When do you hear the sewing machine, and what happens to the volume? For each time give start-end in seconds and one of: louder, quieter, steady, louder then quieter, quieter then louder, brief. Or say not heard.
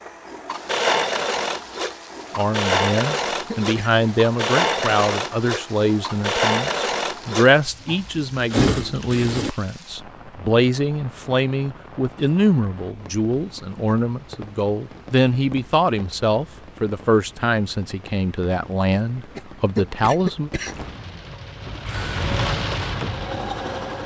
0.0-9.6 steady
21.7-24.0 brief.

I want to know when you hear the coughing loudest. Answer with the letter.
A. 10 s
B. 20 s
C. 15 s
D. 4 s
B.